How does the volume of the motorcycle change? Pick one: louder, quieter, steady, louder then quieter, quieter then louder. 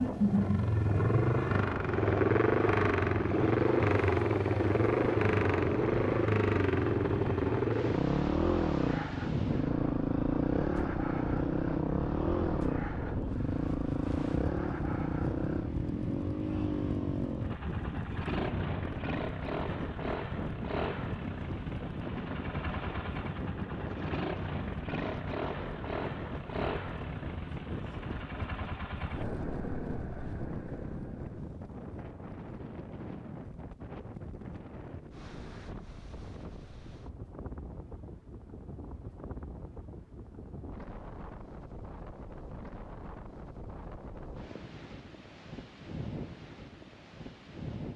quieter.